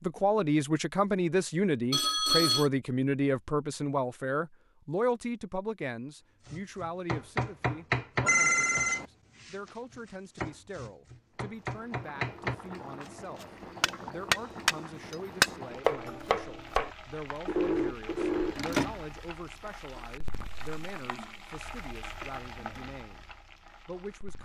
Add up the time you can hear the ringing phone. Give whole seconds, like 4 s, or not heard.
3 s.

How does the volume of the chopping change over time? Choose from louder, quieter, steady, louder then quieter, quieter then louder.
quieter then louder.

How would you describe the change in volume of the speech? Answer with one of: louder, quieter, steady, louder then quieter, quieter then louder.
quieter.